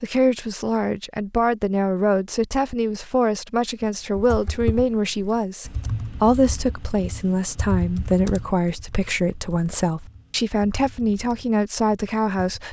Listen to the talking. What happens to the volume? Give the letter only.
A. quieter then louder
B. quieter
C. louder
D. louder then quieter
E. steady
E.